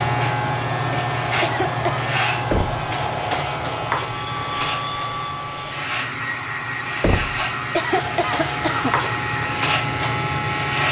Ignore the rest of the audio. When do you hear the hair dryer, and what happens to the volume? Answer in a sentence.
You can hear the hair dryer from 0.0 to 10.8 s, at a steady volume.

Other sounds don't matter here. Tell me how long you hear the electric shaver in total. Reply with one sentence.
The electric shaver can be heard for 11 seconds in total.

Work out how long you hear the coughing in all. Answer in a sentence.
You can hear the coughing for 2 seconds altogether.